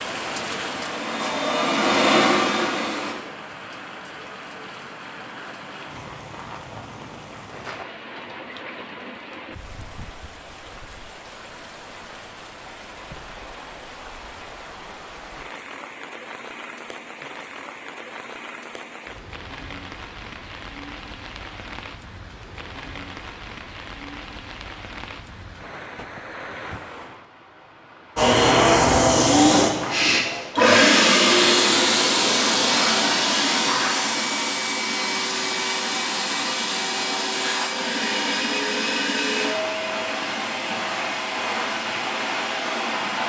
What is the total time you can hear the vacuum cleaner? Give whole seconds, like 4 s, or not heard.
18 s.